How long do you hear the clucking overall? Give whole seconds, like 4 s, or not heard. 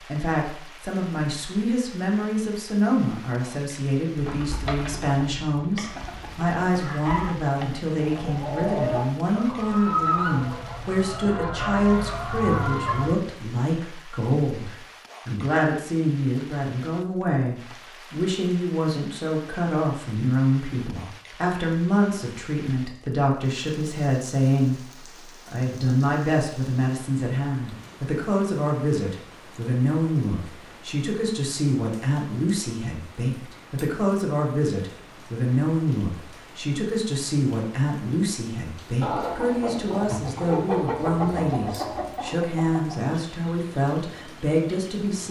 15 s.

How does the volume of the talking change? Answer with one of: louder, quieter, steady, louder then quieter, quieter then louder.
steady.